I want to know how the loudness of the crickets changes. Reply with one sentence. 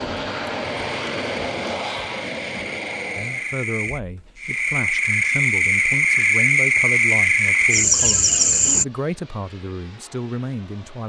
The volume of the crickets goes up.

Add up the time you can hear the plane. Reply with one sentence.
The plane can be heard for 6 seconds in total.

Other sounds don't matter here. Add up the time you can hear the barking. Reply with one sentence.
The barking can't be heard in this clip.